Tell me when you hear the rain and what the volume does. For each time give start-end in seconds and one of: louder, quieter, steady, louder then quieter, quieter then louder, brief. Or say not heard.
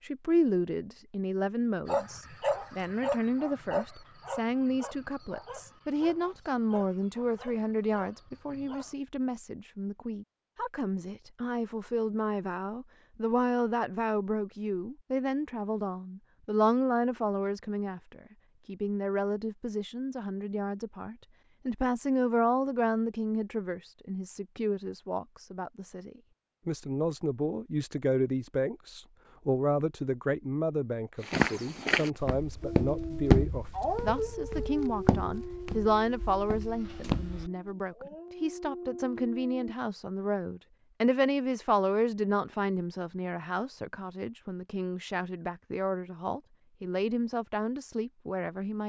not heard.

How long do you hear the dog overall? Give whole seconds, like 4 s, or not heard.
14 s.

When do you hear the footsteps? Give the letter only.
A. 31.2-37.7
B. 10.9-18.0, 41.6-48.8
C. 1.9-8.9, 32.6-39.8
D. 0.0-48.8
A.